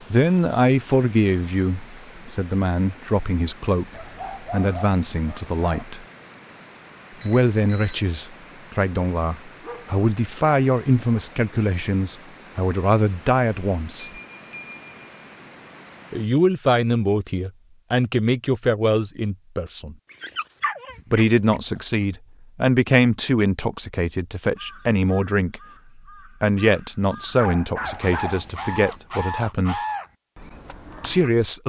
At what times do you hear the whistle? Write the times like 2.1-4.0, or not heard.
not heard.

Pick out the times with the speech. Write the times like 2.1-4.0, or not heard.
0.1-6.0, 7.2-14.1, 16.1-19.9, 21.1-25.6, 26.4-29.8, 31.0-31.6.